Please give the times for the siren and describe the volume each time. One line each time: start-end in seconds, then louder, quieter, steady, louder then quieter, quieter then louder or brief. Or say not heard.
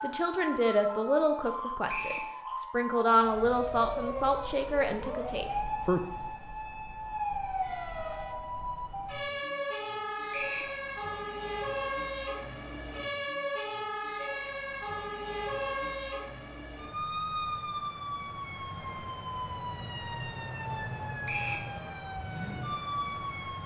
0.0-23.6 steady.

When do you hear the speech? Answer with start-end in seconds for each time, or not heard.
0.0-6.0.